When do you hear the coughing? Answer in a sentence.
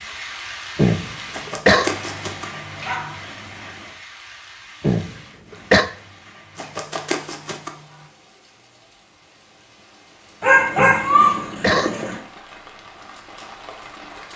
The coughing can be heard from 0.8 to 1.9 s, from 4.8 to 5.8 s and from 10.8 to 11.9 s.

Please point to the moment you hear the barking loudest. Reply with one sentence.
The volume of the barking peaks at 11 seconds.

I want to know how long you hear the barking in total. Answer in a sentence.
The barking can be heard for 5 seconds in total.